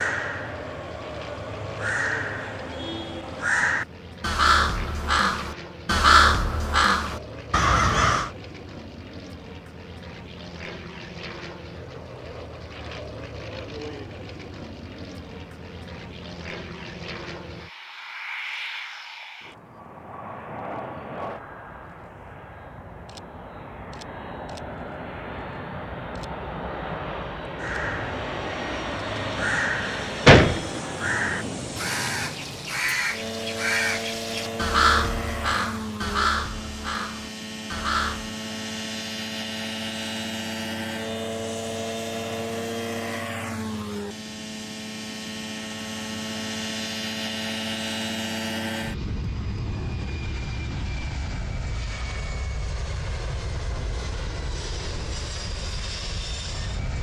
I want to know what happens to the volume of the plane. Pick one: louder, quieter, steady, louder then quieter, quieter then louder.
louder.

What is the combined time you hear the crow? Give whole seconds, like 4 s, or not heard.
19 s.